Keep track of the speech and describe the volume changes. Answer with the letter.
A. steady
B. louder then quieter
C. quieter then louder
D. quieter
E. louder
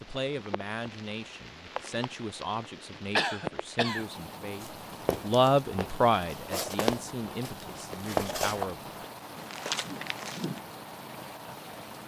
B.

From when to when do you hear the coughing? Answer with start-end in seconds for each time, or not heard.
3.1-4.0.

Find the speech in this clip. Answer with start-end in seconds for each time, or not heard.
0.0-8.8.